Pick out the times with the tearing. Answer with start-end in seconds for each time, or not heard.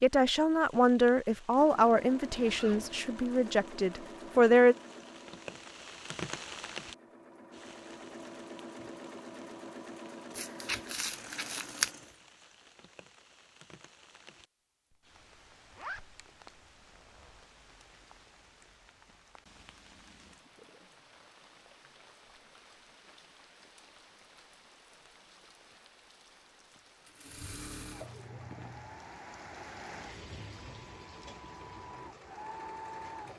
10.3-11.9.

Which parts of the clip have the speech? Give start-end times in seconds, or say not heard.
0.0-4.8.